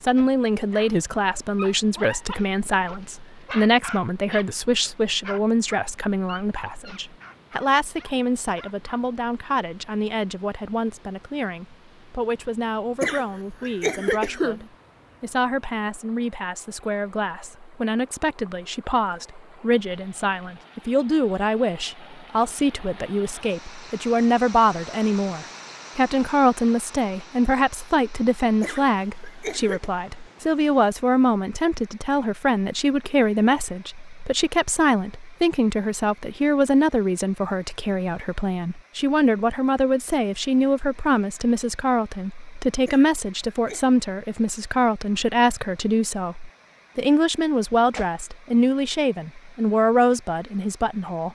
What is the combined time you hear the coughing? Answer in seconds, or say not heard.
4 s.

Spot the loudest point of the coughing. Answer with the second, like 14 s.
14 s.